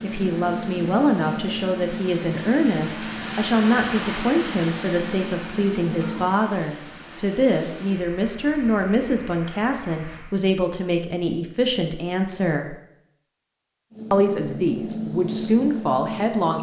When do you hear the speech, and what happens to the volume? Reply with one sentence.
You can hear the speech from 0.0 to 12.8 s, at a steady volume; and briefly from 14.1 to 16.5 s.